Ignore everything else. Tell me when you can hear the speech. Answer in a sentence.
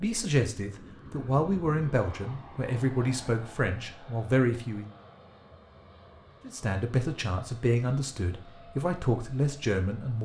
You can hear the speech from 0.0 to 5.0 s and from 6.5 to 10.2 s.